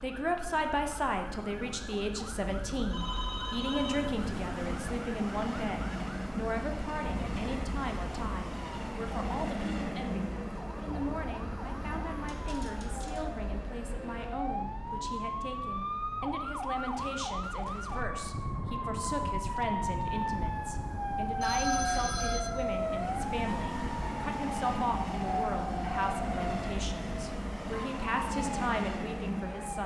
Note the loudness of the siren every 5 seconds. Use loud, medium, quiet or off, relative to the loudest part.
quiet, medium, medium, loud, loud, loud.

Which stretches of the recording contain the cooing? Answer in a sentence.
The cooing can't be heard in this clip.